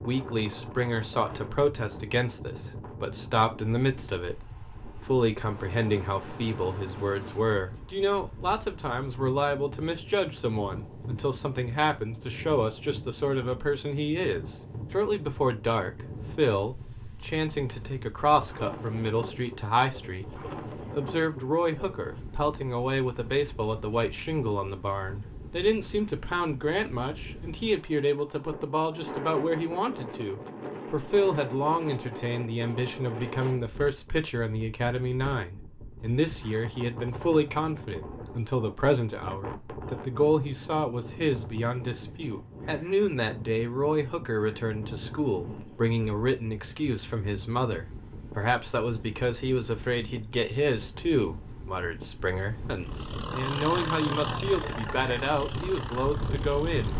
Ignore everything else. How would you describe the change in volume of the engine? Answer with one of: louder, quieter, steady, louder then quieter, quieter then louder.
quieter.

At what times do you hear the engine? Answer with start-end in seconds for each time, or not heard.
52.8-56.9.